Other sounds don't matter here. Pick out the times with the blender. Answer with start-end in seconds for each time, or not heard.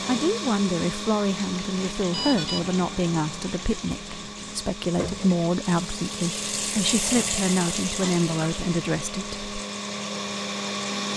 0.0-11.1.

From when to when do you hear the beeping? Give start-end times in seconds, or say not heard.
2.1-3.1.